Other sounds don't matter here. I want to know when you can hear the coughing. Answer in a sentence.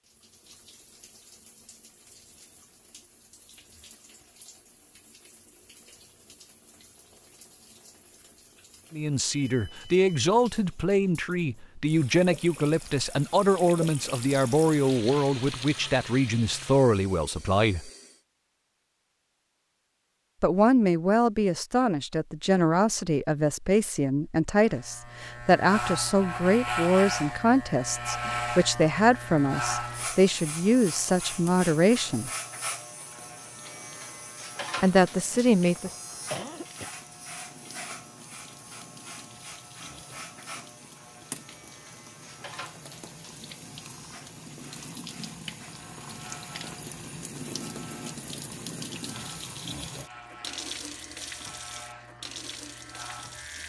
The coughing can be heard from 35.8 to 36.9 s.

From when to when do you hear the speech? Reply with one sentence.
You can hear the speech from 8.9 to 17.9 s, from 20.4 to 32.3 s and from 34.8 to 35.9 s.